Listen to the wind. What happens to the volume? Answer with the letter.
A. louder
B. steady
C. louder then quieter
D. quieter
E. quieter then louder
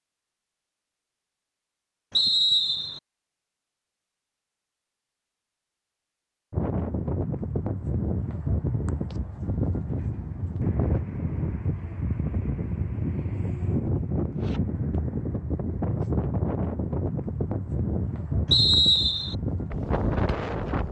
B.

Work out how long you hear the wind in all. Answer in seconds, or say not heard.
14 s.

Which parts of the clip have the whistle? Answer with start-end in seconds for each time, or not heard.
2.1-3.0, 18.5-19.4.